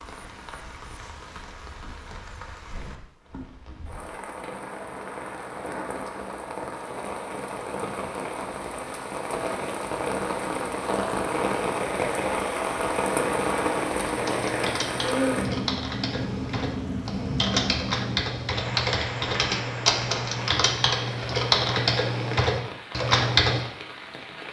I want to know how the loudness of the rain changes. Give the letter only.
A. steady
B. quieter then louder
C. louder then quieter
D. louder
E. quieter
C.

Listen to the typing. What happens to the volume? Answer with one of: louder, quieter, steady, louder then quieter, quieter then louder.
louder.